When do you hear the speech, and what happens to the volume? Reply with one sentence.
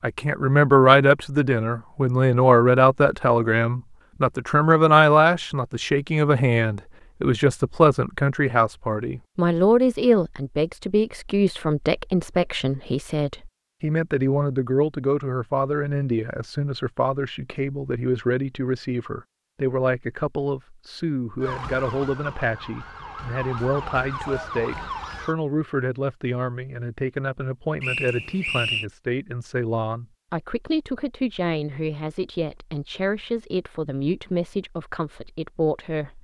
The speech can be heard from 0.0 to 36.1 s, getting quieter.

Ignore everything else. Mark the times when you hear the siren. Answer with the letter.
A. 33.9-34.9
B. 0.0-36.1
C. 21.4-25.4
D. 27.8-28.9
C.